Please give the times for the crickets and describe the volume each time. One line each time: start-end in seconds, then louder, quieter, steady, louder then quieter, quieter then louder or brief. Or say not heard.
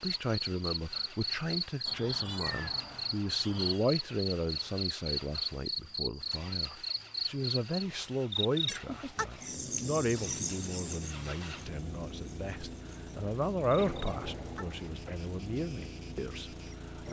0.0-16.9 quieter.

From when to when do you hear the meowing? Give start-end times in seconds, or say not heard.
1.9-3.8, 8.8-9.6, 13.8-15.2.